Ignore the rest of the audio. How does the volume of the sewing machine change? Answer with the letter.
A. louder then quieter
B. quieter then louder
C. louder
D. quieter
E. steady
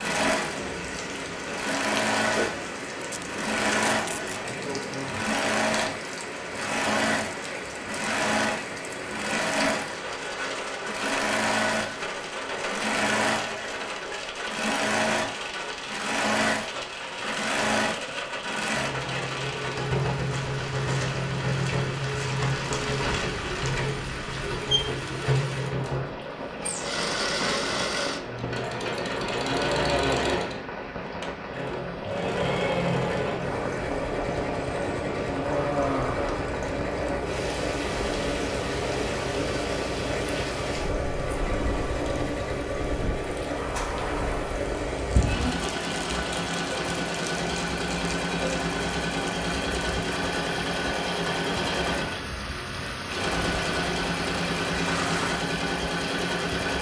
E.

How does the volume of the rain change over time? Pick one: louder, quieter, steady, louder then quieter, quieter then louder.
steady.